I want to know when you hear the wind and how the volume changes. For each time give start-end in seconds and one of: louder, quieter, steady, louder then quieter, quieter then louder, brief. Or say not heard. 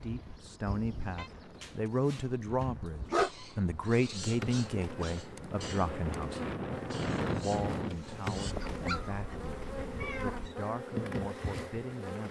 0.0-9.0 louder.